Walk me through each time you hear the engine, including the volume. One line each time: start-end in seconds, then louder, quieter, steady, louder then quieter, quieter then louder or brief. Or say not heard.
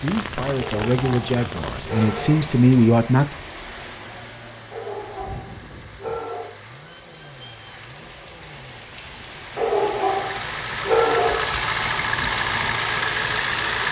0.0-13.8 louder.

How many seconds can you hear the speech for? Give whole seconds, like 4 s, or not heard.
3 s.